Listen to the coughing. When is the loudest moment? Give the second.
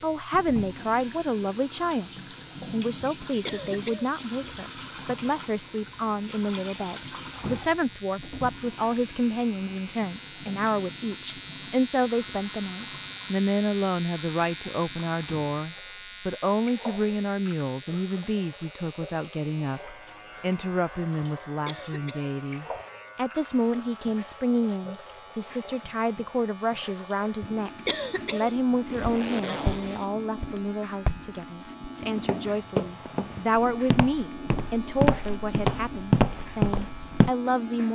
28 s.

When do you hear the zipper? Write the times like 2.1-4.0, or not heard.
28.9-30.1.